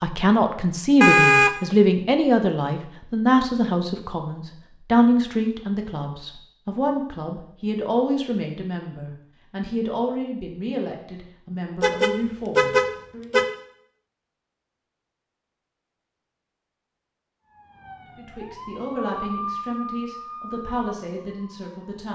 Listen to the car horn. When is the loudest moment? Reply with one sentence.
The loudest moment of the car horn is at 1 second.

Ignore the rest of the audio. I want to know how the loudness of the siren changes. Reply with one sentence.
The loudness of the siren goes up, then down.